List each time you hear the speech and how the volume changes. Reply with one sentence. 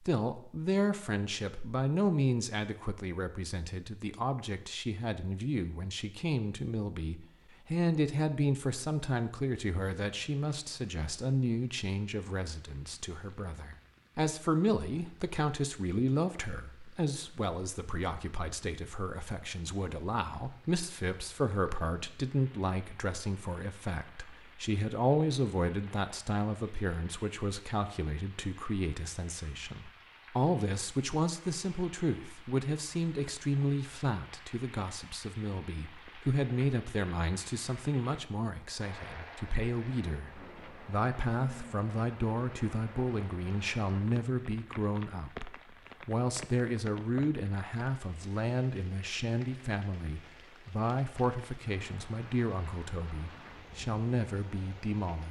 You can hear the speech from 0.0 to 55.2 s, at a steady volume.